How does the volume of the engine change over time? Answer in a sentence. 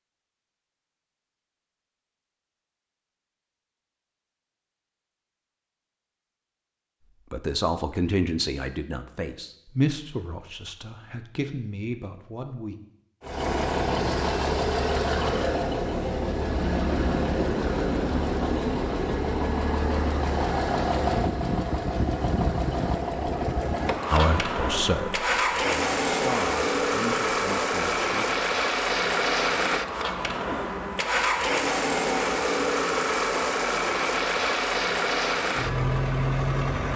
The volume of the engine stays about the same.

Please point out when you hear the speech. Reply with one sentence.
The speech can be heard from 7.3 to 12.8 s and from 24.1 to 28.2 s.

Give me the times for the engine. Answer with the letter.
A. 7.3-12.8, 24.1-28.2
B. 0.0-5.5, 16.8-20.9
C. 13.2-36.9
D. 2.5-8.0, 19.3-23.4
C.